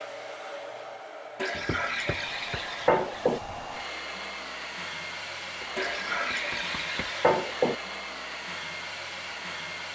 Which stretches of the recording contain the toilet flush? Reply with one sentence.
You can hear the toilet flush from 1.4 to 3.4 s and from 5.8 to 7.8 s.